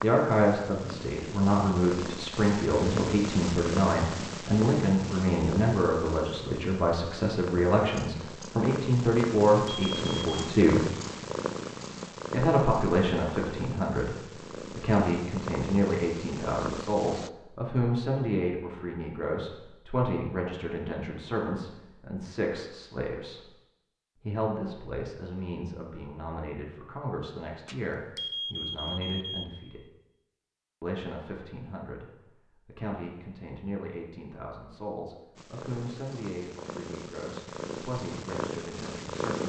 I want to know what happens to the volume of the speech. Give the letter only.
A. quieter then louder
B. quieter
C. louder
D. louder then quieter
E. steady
B.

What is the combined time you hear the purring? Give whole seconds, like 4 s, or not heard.
21 s.